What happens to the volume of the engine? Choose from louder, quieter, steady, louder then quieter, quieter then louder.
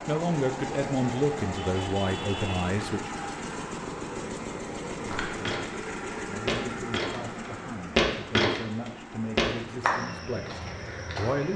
quieter.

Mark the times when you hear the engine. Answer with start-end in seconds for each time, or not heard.
0.0-11.3.